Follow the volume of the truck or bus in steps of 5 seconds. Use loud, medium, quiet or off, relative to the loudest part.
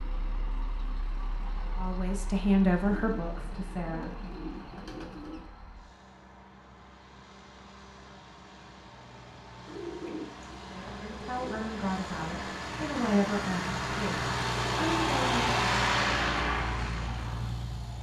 quiet, quiet, medium, loud.